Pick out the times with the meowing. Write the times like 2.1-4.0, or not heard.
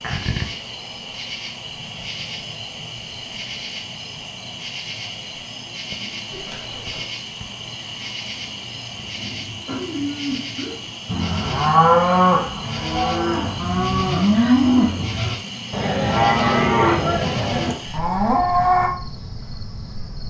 6.3-7.0.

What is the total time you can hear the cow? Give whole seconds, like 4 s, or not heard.
9 s.